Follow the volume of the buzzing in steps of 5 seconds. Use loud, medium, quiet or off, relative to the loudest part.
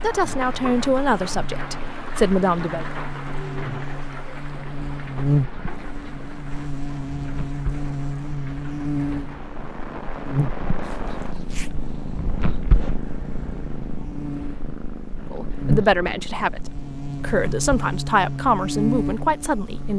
medium, loud, medium, loud.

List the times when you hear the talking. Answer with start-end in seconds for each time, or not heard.
0.0-2.9, 15.3-19.9.